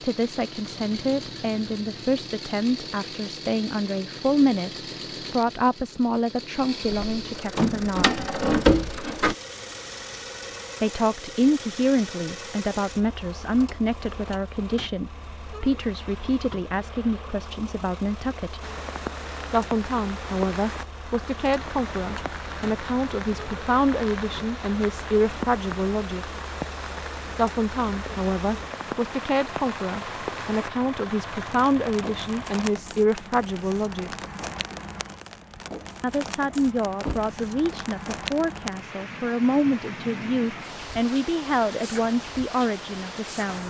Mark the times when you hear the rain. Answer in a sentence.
You can hear the rain from 18.6 to 43.6 s.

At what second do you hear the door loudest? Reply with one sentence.
The volume of the door peaks at 9 seconds.